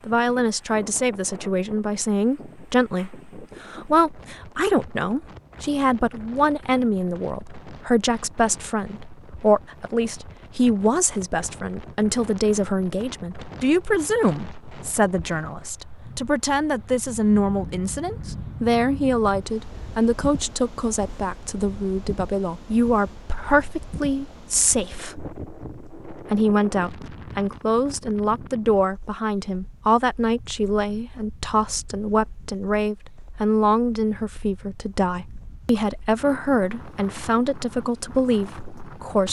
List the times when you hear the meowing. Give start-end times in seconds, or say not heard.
not heard.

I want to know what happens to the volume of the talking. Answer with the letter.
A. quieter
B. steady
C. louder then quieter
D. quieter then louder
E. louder
B.